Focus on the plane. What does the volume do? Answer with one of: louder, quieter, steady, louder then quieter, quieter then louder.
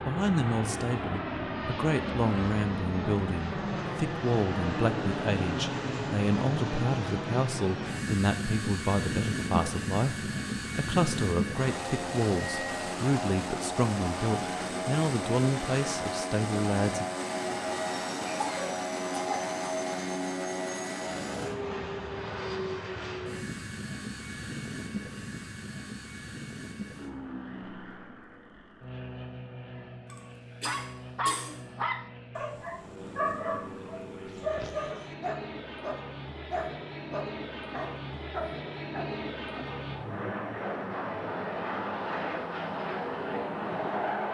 quieter then louder.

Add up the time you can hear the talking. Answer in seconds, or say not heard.
17 s.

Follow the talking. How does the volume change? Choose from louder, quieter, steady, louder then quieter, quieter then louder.
steady.